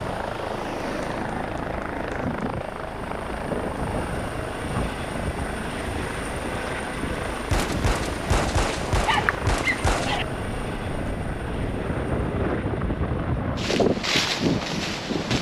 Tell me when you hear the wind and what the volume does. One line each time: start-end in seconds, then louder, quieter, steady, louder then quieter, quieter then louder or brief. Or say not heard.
0.0-15.3 louder.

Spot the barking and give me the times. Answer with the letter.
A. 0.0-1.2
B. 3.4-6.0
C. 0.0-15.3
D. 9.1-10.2
D.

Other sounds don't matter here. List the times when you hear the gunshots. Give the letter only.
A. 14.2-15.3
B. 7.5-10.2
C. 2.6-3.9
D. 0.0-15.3
B.